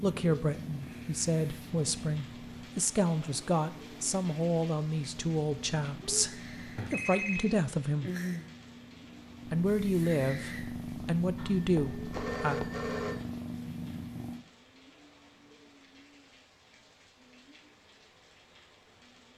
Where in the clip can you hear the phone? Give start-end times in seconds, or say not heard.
6.8-7.5, 11.3-13.2.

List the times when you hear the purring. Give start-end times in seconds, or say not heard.
0.0-14.4.